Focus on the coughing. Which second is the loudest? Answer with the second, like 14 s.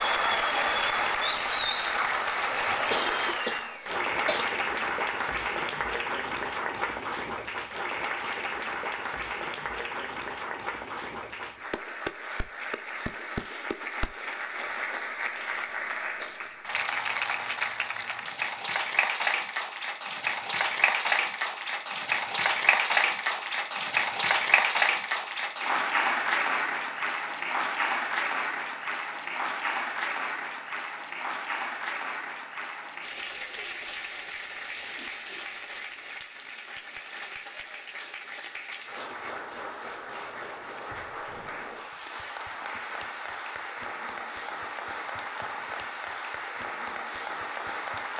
3 s.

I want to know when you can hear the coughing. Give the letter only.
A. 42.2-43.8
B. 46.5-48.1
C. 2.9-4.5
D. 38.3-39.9
C.